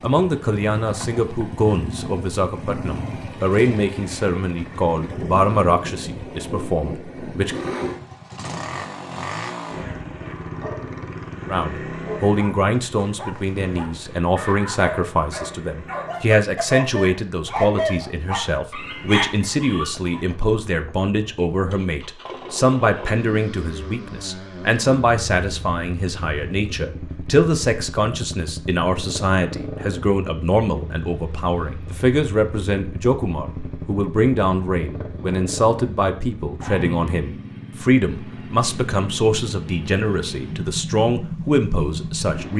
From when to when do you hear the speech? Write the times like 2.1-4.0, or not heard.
0.0-7.6, 11.4-42.5.